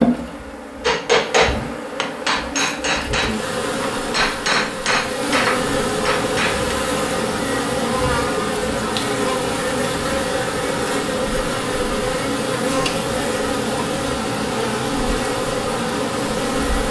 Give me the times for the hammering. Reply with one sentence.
You can hear the hammering from 0.8 to 6.8 s.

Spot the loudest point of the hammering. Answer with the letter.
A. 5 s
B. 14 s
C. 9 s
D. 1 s
D.